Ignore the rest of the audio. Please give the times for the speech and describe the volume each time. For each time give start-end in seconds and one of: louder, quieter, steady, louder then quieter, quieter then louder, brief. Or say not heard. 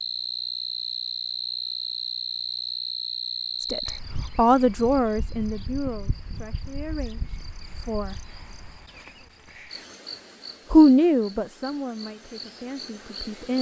3.6-8.2 quieter
10.7-13.5 brief.